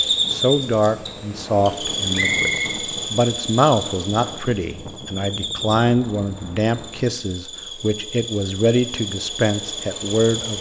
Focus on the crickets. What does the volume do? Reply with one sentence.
The volume of the crickets goes down, then up.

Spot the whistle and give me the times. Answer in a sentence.
The whistle can be heard from 2.1 to 2.8 s.